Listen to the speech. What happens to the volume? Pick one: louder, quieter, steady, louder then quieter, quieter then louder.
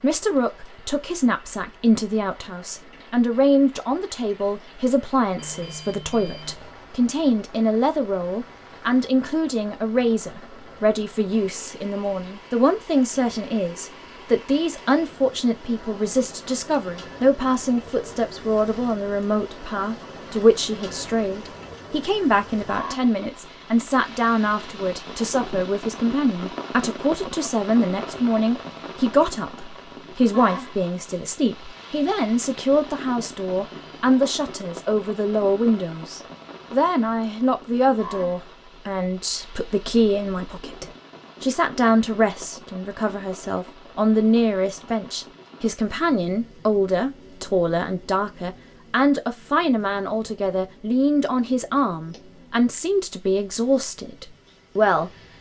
steady.